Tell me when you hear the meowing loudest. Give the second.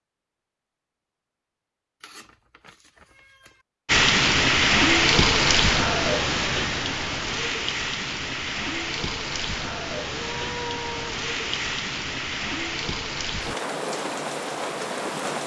11 s.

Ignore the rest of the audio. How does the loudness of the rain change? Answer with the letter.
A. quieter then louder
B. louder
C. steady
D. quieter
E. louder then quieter
D.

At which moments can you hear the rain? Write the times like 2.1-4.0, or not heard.
3.9-15.4.